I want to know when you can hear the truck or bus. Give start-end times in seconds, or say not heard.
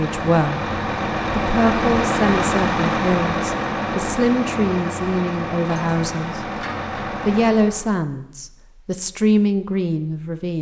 0.0-7.9.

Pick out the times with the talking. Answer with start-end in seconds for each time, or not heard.
0.0-0.7, 1.4-6.5, 7.2-10.5.